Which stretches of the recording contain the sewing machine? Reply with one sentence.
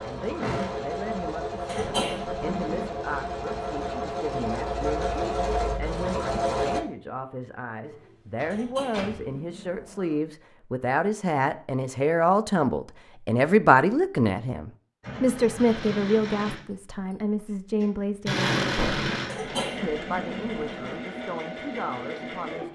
The sewing machine can be heard from 0.0 to 6.8 s and from 15.0 to 22.6 s.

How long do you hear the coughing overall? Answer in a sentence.
You can hear the coughing for 5 seconds altogether.